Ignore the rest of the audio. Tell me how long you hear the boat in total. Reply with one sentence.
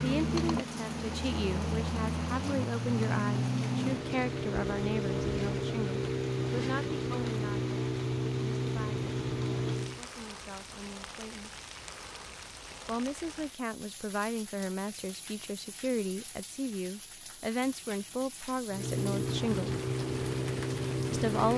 You can hear the boat for 13 seconds altogether.